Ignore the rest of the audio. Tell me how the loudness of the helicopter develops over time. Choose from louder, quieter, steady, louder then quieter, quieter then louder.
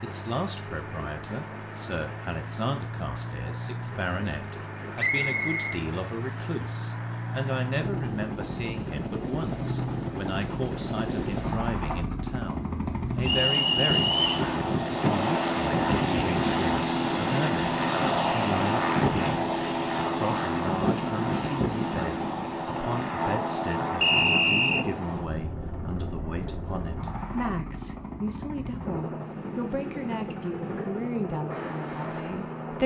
louder then quieter.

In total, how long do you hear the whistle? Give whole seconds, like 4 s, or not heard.
3 s.